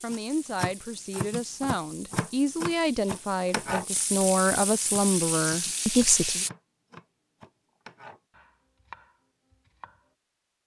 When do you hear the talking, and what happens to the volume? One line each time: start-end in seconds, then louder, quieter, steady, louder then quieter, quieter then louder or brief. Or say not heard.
0.0-6.5 louder.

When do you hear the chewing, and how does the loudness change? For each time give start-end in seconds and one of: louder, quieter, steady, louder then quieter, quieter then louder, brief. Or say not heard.
not heard.